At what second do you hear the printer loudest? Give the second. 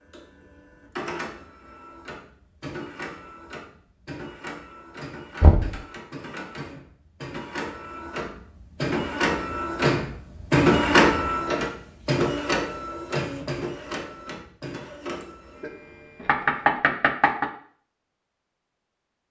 11 s.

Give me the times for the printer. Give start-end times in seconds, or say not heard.
0.0-16.8.